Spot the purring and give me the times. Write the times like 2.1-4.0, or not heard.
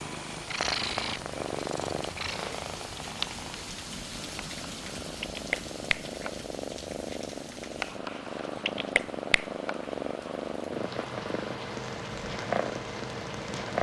0.0-13.7.